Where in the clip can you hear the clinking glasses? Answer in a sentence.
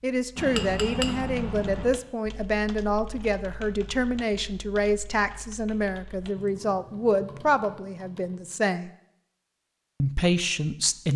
The clinking glasses can be heard from 0.3 to 1.9 s.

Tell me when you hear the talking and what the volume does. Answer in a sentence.
You can hear the talking from 0.0 to 8.9 s, at a steady volume; and briefly from 10.0 to 11.1 s.